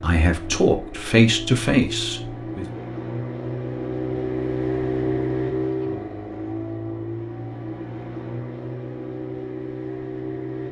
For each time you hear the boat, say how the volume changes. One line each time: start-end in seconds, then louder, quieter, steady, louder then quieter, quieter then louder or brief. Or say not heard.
0.0-10.6 louder then quieter.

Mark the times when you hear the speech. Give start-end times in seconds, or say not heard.
0.0-2.8.